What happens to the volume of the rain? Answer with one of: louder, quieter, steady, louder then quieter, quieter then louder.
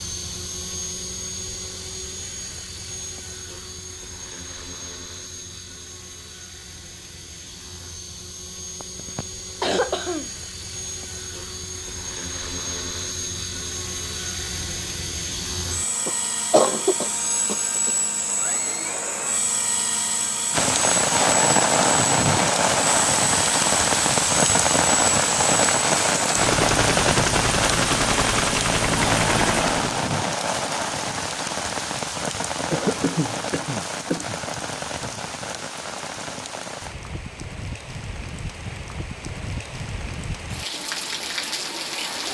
quieter.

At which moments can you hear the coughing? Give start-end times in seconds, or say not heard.
8.8-10.3, 16.1-17.9, 32.7-34.4.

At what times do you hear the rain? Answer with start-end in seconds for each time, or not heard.
20.5-42.3.